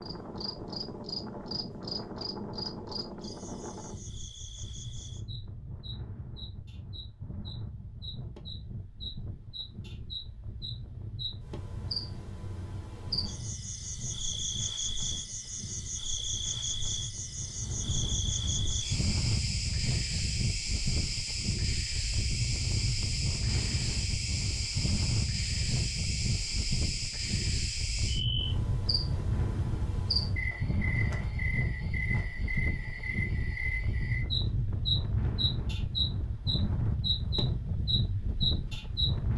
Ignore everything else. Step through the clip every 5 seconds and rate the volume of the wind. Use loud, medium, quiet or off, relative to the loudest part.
medium, medium, medium, loud, loud, loud, loud, loud.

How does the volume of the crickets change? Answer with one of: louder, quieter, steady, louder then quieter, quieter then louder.
louder.